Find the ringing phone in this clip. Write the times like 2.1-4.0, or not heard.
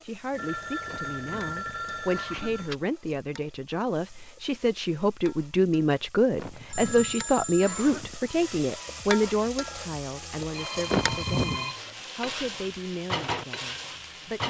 0.3-2.8, 6.7-8.0, 10.5-11.9.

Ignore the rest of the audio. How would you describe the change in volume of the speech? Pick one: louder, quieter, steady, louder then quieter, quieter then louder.
louder then quieter.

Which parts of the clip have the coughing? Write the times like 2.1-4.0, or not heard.
0.8-2.7, 6.3-8.2, 10.9-11.7.